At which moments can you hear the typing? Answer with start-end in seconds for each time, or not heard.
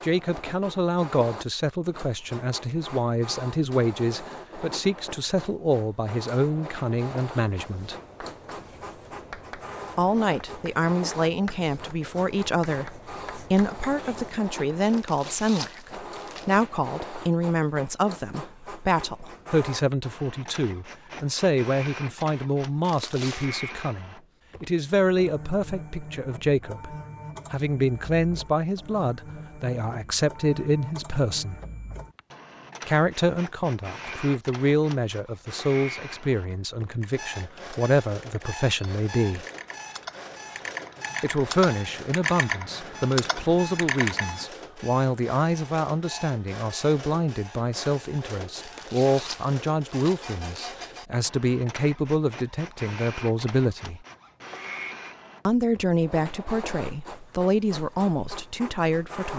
36.5-44.5.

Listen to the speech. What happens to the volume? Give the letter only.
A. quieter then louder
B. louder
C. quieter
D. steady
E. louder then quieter
D.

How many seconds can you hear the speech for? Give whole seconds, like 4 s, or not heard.
53 s.